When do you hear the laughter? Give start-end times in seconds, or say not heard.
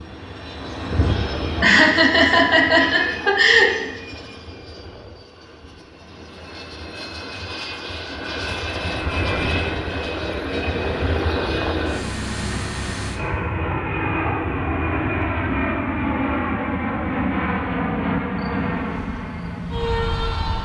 1.6-3.9.